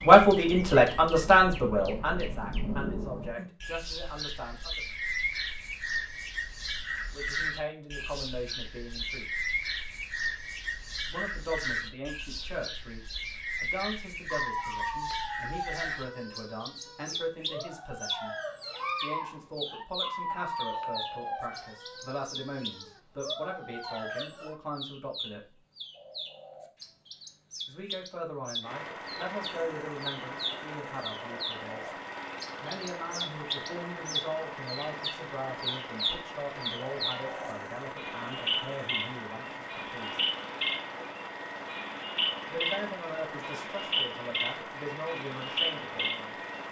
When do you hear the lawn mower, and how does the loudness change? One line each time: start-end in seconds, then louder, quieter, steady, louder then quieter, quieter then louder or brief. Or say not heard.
28.6-46.6 steady.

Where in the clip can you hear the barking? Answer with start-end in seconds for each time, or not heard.
14.3-24.6.